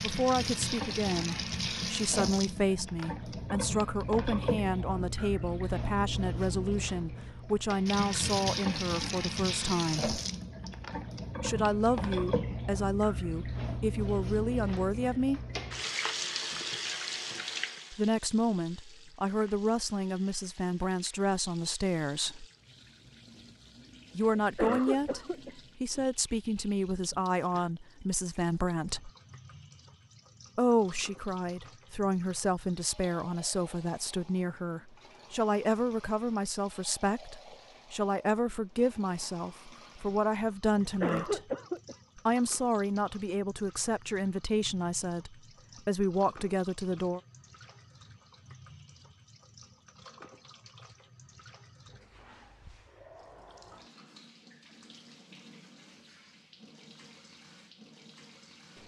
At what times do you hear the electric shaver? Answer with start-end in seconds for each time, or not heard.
not heard.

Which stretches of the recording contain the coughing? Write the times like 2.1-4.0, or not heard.
24.4-25.5, 41.0-42.0.